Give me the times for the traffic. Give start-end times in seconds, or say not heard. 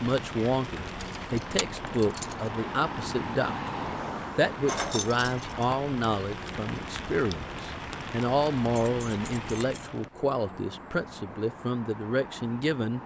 0.1-13.0.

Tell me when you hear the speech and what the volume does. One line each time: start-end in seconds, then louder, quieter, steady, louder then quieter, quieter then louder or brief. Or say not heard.
0.0-13.0 steady.